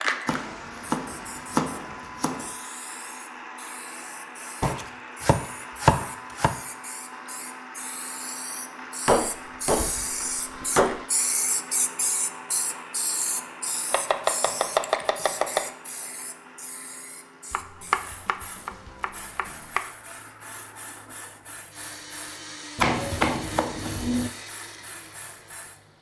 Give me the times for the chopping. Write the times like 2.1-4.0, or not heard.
0.2-2.5, 4.6-6.5, 9.1-11.1, 13.9-15.7, 17.5-19.8, 22.8-24.3.